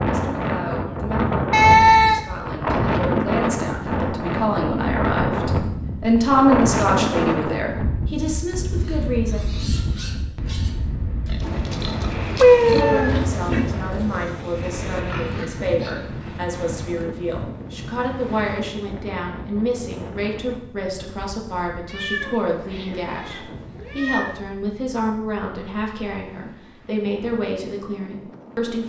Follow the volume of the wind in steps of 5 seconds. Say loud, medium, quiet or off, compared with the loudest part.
loud, loud, medium, medium, quiet, quiet.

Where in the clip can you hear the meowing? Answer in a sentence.
The meowing can be heard from 1.5 to 2.2 s, from 12.4 to 13.1 s and from 21.9 to 24.4 s.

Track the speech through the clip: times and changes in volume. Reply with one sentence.
The speech can be heard from 0.0 to 9.4 s, getting louder then quieter; and from 12.7 to 28.8 s, at a steady volume.